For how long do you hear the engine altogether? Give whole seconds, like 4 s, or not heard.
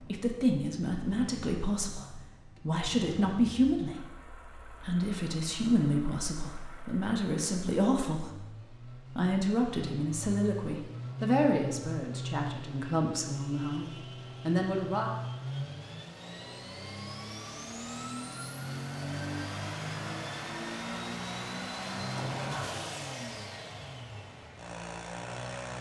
26 s.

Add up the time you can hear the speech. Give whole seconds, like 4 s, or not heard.
15 s.